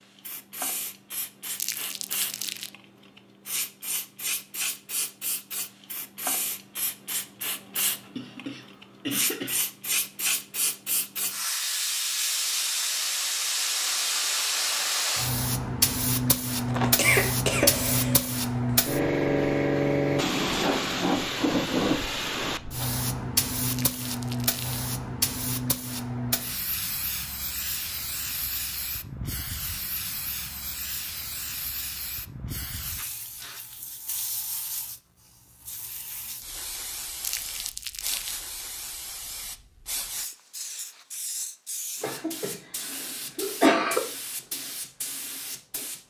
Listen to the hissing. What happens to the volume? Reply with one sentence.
The loudness of the hissing goes up, then down.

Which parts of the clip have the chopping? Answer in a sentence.
You can't hear the chopping here.